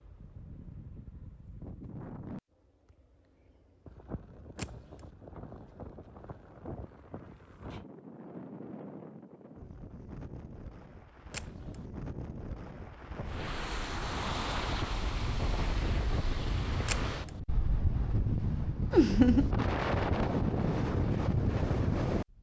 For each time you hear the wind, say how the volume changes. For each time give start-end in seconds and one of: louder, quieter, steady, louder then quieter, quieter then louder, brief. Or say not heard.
0.0-22.2 louder.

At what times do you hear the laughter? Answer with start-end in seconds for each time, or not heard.
18.9-19.5.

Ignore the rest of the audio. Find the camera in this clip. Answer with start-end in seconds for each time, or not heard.
4.5-5.1, 11.3-11.8, 16.9-17.4.